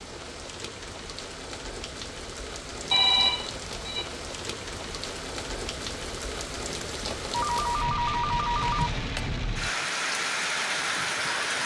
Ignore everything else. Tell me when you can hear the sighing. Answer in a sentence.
You can't hear the sighing here.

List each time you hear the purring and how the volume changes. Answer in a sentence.
You can't hear the purring here.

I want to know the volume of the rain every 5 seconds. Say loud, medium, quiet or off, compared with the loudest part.
medium, medium, loud.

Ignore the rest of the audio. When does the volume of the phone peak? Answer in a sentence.
The volume of the phone peaks at 3 seconds.